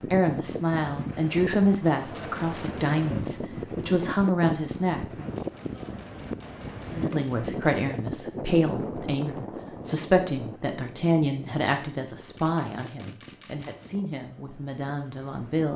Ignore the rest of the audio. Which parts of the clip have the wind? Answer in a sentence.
You can hear the wind from 0.0 to 15.7 s.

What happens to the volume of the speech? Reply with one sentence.
The volume of the speech goes down.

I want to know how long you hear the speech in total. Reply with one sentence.
You can hear the speech for 14 seconds altogether.